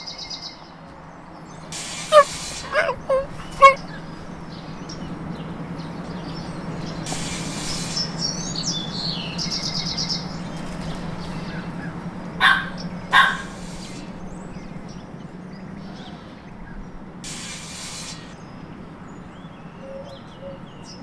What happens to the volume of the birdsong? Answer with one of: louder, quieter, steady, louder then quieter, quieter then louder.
louder then quieter.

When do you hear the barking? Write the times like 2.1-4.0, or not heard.
2.1-3.8, 12.4-13.4.